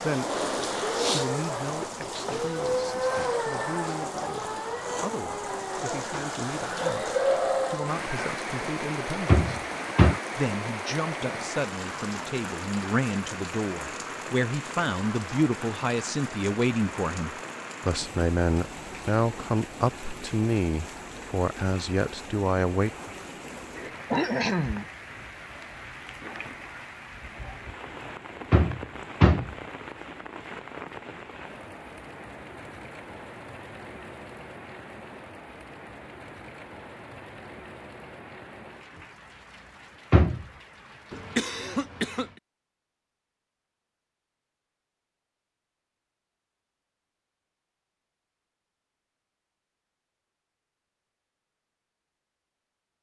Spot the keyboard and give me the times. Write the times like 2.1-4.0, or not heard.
not heard.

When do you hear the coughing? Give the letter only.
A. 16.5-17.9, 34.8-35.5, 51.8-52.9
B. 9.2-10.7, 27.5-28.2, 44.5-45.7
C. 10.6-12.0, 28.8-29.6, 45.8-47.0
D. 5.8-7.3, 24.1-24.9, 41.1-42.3
D.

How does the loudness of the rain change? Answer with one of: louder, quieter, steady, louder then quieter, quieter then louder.
quieter.